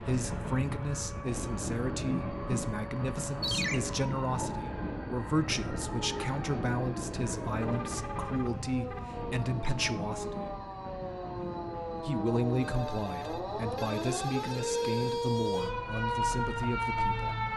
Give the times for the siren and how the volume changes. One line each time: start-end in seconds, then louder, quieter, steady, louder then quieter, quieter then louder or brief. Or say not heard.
0.0-17.5 louder.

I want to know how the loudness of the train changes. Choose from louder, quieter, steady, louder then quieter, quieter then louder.
quieter.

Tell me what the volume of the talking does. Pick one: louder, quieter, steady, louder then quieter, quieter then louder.
steady.